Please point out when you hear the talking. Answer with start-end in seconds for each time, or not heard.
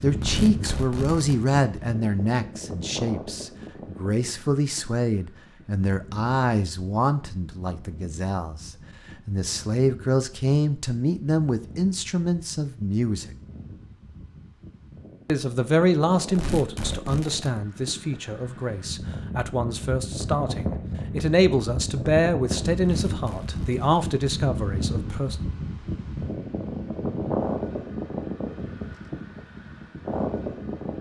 0.0-13.3, 15.2-25.4.